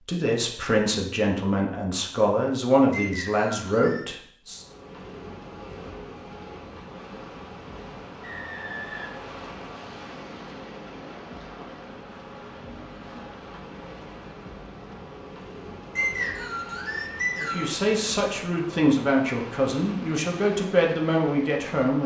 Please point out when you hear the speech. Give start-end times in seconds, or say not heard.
0.0-4.7, 17.4-22.0.